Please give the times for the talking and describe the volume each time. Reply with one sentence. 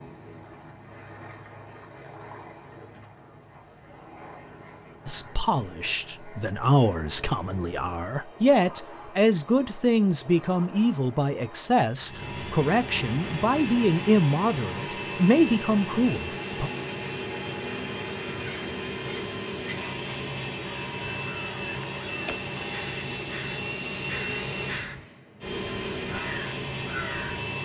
You can hear the talking from 5.0 to 16.7 s, at a steady volume.